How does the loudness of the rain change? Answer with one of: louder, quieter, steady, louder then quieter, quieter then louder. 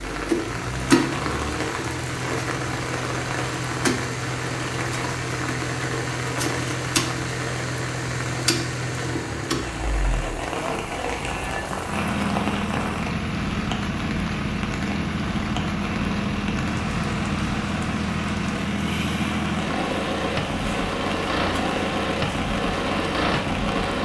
quieter.